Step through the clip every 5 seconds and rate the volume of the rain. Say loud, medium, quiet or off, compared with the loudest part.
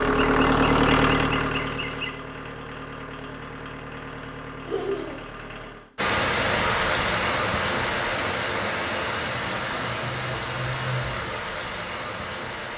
off, loud, medium.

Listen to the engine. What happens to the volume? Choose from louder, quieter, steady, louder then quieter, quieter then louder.
quieter.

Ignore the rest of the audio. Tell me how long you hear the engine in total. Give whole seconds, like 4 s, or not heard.
6 s.